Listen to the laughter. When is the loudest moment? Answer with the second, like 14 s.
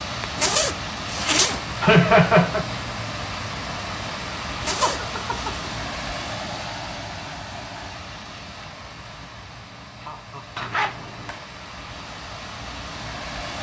2 s.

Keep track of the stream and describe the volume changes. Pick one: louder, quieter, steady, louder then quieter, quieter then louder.
quieter.